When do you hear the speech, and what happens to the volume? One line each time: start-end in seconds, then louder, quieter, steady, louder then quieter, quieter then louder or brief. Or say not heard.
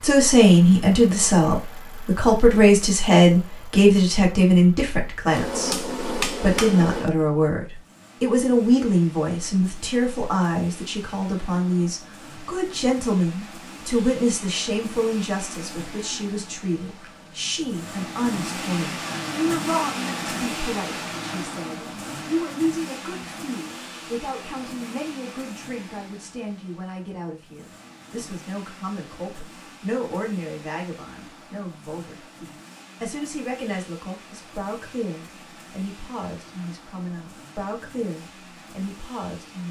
0.0-39.6 quieter.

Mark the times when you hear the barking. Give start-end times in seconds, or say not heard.
not heard.